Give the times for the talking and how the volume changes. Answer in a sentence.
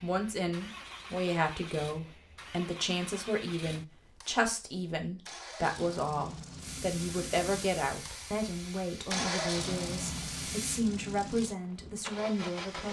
The talking can be heard from 0.0 to 12.8 s, at a steady volume.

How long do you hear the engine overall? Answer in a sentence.
You can hear the engine for 13 seconds altogether.